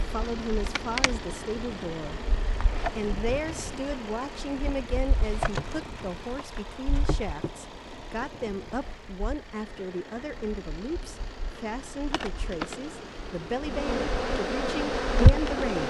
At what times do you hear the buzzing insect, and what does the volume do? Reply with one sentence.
You can hear the buzzing insect from 0.0 to 15.8 s, getting quieter then louder.